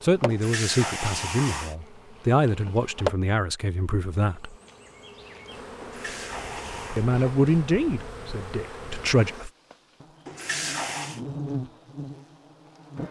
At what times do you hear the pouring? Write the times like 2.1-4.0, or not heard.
0.3-1.8, 5.8-7.1, 10.2-11.2.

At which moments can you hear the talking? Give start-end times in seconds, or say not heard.
0.0-4.5, 7.0-9.5.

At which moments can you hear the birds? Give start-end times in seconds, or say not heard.
not heard.